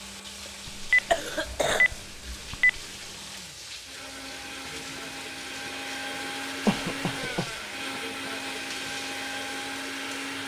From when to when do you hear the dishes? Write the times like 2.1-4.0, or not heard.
not heard.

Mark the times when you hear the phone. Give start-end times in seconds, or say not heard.
0.7-2.8.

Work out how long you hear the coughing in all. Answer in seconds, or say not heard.
2 s.